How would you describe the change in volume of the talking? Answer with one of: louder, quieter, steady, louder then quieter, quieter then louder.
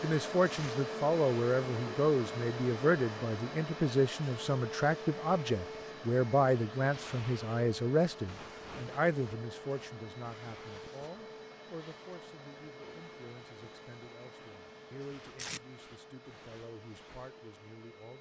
quieter.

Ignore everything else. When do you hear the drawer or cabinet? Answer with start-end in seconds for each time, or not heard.
not heard.